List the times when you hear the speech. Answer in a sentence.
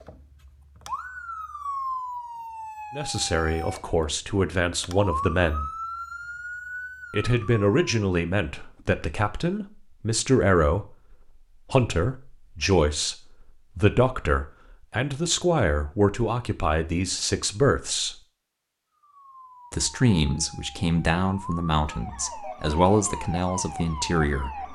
The speech can be heard from 3.0 to 5.7 s, from 7.1 to 18.1 s and from 19.7 to 24.6 s.